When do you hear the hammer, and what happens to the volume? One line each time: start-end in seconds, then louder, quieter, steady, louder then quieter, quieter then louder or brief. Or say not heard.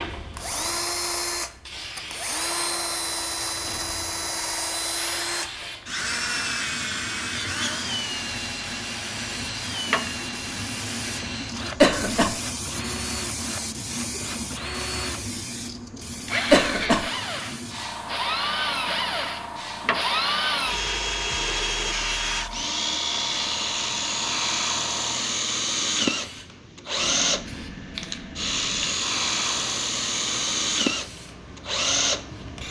not heard.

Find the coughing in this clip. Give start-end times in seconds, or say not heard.
11.8-12.3, 16.5-17.1.